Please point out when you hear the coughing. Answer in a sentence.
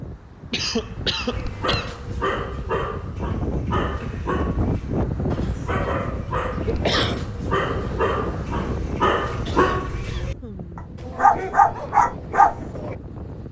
You can hear the coughing from 0.5 to 1.9 s, from 6.5 to 7.2 s and from 9.4 to 10.8 s.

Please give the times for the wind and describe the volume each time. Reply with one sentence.
You can hear the wind from 0.0 to 13.4 s, getting louder then quieter.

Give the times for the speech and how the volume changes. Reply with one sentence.
The speech can't be heard in this clip.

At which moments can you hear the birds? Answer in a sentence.
You can't hear the birds here.